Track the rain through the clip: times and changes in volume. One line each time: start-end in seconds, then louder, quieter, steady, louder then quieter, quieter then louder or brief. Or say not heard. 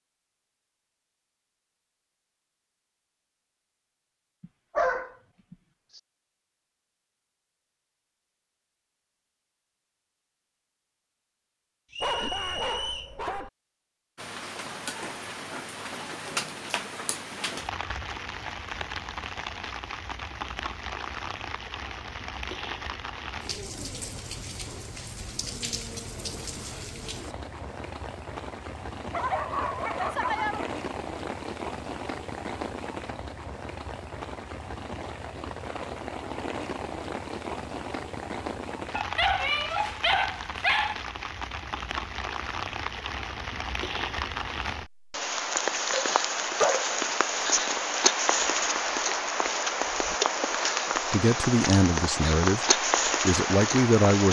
14.2-54.2 louder.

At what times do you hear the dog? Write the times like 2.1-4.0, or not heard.
4.4-6.0, 12.0-13.5, 29.1-30.7, 39.0-41.0, 45.9-47.0.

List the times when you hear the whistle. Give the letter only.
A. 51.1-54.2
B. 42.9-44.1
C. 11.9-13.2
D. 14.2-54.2
C.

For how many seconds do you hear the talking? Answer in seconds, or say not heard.
3 s.